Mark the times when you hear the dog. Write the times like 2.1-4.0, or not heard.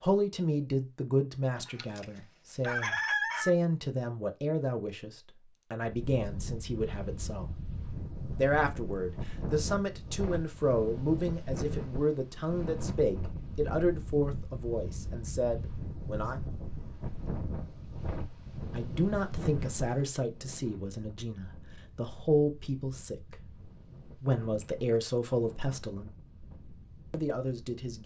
not heard.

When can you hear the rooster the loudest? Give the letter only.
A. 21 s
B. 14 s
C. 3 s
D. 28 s
C.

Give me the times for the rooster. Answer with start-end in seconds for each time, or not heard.
1.6-3.5.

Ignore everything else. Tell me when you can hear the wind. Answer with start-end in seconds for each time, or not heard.
5.8-28.0.